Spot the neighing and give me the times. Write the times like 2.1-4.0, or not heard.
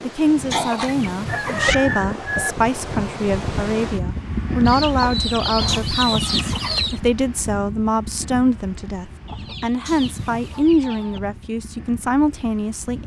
not heard.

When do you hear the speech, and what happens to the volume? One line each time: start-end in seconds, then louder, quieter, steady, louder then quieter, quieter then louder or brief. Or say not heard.
0.0-13.0 steady.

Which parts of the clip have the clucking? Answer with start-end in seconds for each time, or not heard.
0.5-2.5, 4.7-7.0, 9.2-11.2.